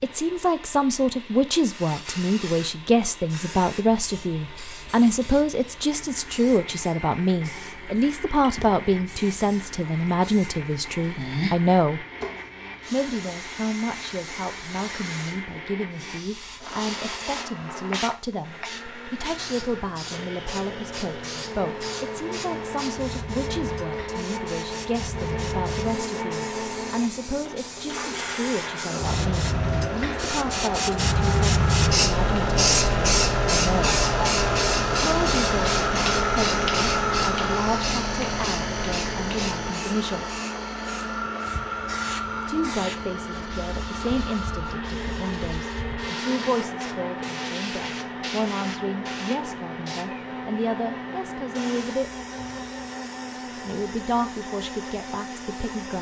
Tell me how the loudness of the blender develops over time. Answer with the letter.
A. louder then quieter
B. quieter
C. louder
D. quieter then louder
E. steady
A.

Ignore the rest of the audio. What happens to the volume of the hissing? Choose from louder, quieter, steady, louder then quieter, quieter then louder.
louder then quieter.